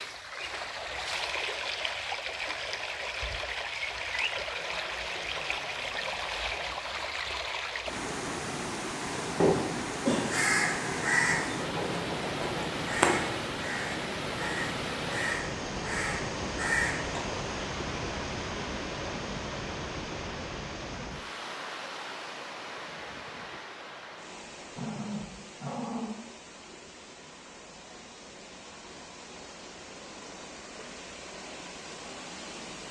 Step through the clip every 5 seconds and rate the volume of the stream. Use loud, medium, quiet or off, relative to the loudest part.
loud, loud, loud, loud, medium, quiet, medium.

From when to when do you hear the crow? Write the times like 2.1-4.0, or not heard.
9.1-17.2.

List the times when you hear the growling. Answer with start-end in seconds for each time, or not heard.
4.3-7.0, 24.8-26.1.